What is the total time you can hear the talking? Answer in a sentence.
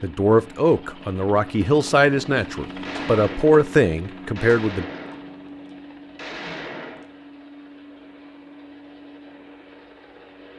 The talking can be heard for 5 seconds in total.